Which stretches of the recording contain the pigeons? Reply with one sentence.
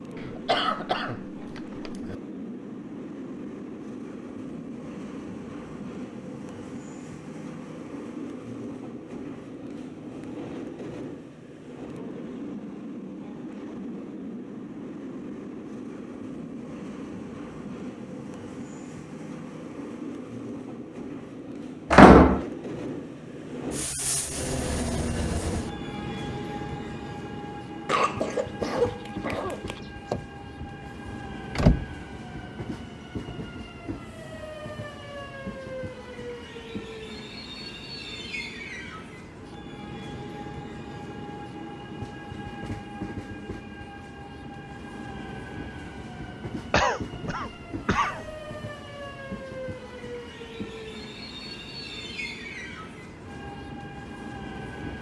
The pigeons can't be heard in this clip.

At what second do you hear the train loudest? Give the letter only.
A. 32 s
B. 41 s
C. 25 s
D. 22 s
C.